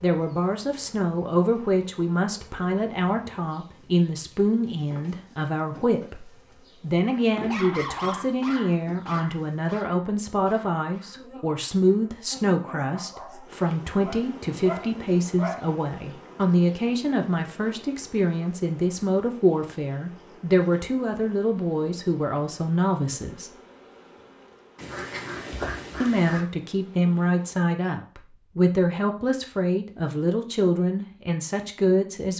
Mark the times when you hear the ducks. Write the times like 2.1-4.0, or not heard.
24.8-26.4.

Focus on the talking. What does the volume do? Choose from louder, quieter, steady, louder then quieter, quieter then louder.
steady.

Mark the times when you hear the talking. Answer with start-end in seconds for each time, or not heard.
0.0-23.5, 26.0-32.3.